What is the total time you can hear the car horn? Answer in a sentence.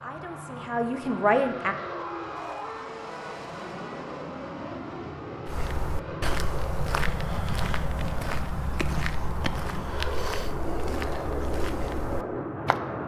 You can hear the car horn for 2 seconds altogether.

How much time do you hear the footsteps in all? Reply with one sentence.
You can hear the footsteps for 7 seconds altogether.